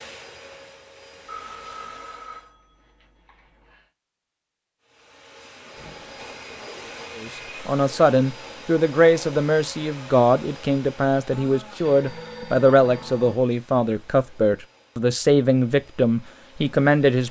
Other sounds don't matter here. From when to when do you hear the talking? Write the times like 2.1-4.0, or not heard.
7.2-17.2.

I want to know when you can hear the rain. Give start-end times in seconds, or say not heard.
not heard.